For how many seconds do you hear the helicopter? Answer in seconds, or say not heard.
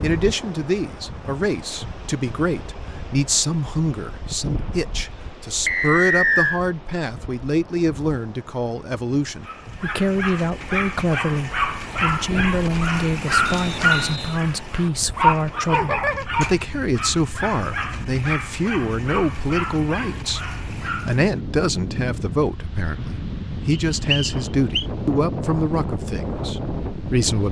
not heard.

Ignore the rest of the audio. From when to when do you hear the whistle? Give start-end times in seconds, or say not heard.
5.7-6.6, 13.4-14.4, 23.7-24.9.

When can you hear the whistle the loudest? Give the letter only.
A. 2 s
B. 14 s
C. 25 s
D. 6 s
D.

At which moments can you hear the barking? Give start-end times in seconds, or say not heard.
9.4-21.3.